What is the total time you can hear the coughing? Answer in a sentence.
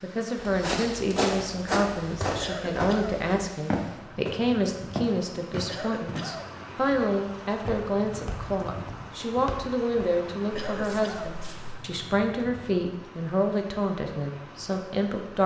You can hear the coughing for 3 seconds altogether.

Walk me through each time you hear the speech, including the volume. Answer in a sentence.
You can hear the speech from 0.0 to 15.4 s, at a steady volume.